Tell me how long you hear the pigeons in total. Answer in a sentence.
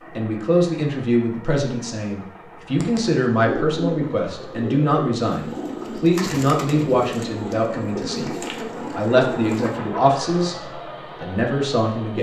You can hear the pigeons for 7 seconds altogether.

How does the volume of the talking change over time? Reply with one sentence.
The loudness of the talking stays about the same.